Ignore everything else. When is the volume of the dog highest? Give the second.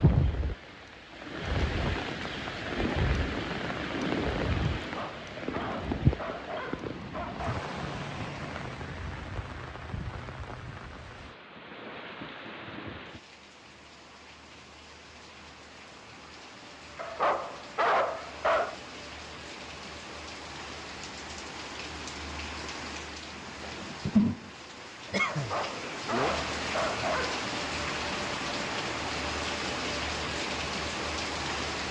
18 s.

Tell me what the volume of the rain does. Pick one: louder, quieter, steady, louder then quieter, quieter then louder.
quieter then louder.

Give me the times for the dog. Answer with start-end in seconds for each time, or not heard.
4.8-7.6, 16.9-18.8, 25.3-27.4.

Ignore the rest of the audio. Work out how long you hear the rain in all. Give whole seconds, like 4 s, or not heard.
32 s.